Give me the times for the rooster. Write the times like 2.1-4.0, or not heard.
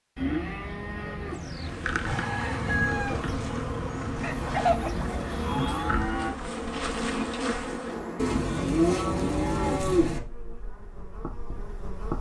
2.0-6.0.